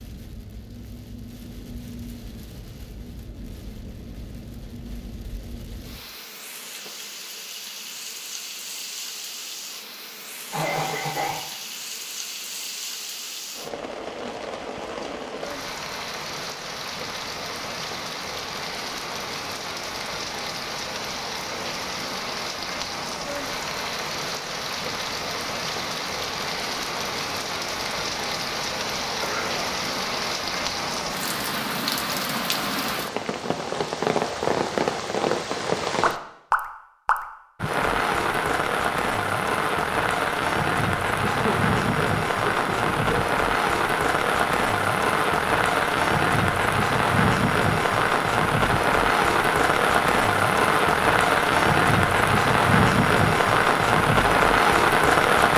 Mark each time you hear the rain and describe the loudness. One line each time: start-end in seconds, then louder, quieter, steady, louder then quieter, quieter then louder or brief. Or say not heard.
0.0-55.5 louder.